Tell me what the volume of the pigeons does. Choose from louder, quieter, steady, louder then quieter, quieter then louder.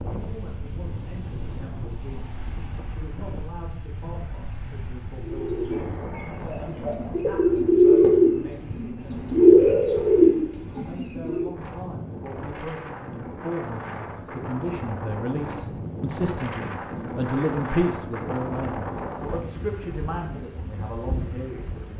louder.